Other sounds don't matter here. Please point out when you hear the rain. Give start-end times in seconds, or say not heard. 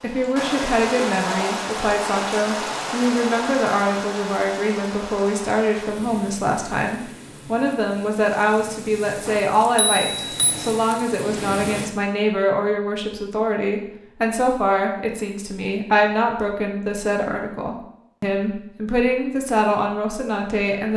0.0-11.9.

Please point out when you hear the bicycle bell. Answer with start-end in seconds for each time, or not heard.
9.2-10.7.